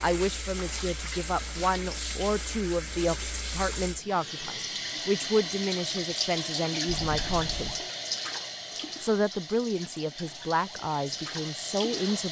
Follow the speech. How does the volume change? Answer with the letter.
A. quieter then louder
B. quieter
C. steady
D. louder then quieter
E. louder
C.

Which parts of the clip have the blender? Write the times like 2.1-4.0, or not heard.
not heard.